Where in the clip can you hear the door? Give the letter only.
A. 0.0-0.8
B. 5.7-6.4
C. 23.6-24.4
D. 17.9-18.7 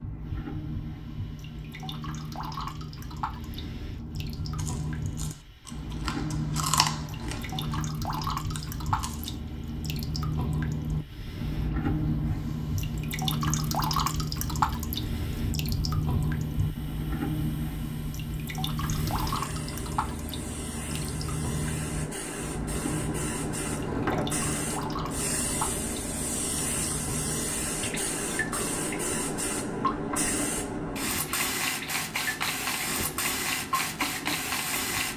C.